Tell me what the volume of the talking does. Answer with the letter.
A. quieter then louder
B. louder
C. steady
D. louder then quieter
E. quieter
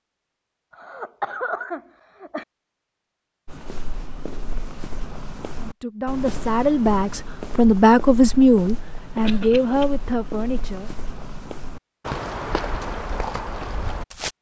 D.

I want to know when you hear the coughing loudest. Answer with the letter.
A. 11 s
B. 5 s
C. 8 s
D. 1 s
D.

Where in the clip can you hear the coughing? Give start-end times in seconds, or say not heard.
0.7-2.5, 9.2-9.8.